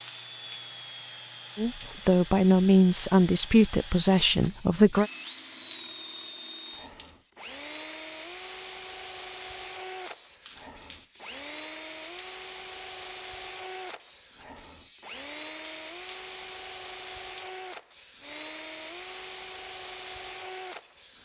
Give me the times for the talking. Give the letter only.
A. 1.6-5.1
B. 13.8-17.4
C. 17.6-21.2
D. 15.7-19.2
A.